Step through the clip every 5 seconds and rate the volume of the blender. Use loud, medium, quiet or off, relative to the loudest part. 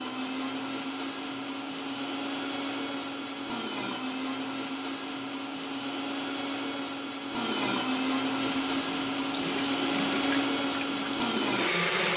medium, loud, loud.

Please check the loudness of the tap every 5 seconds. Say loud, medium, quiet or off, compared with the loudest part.
off, loud, loud.